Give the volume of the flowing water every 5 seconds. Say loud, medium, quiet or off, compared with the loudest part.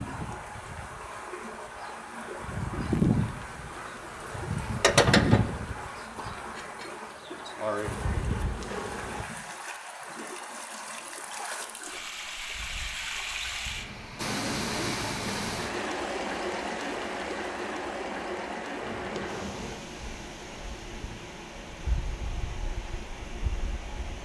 medium, medium, loud, loud, medium.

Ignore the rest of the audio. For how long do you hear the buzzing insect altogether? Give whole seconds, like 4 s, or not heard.
15 s.